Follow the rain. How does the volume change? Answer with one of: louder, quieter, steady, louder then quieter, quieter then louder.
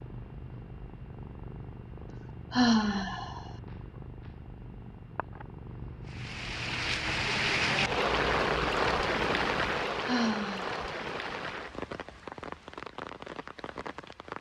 quieter.